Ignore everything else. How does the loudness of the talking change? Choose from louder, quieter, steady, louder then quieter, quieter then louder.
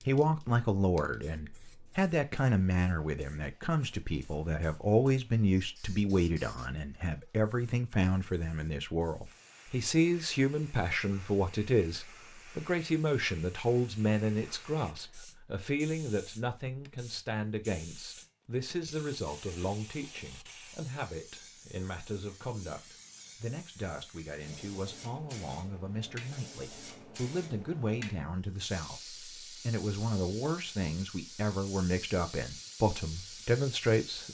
quieter then louder.